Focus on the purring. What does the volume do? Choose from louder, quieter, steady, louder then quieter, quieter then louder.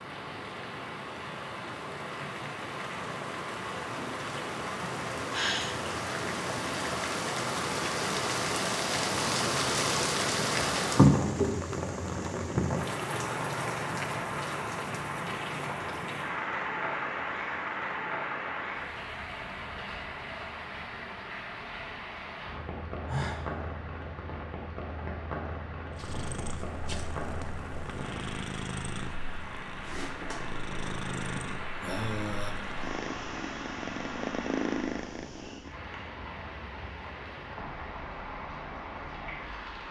louder.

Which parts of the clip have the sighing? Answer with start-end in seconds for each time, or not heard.
4.8-5.8, 23.1-23.5, 31.4-32.5.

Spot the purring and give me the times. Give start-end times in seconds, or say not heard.
25.9-35.8.